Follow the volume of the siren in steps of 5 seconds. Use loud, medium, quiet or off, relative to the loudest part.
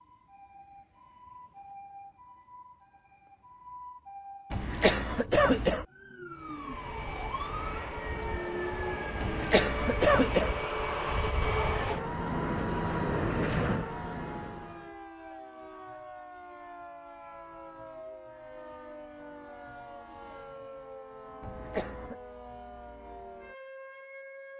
medium, loud, medium, medium, medium.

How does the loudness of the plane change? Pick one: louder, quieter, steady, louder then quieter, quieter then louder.
louder.